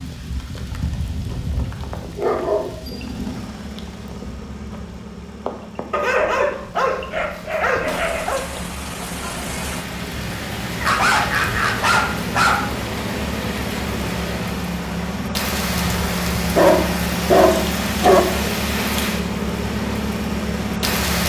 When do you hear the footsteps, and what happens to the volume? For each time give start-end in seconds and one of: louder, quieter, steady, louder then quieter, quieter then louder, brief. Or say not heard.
not heard.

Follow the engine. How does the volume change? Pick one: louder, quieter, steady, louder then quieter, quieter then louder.
louder.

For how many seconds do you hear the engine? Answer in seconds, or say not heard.
18 s.